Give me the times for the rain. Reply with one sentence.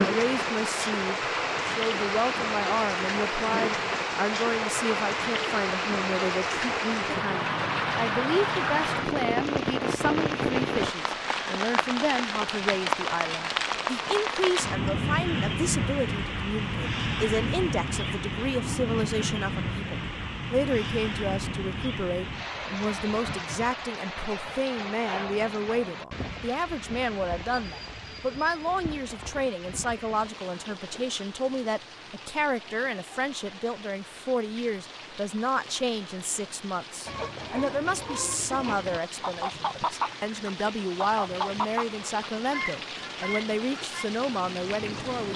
The rain can be heard from 0.0 to 45.3 s.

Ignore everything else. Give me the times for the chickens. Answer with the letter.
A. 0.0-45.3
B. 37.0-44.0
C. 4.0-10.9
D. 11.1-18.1
B.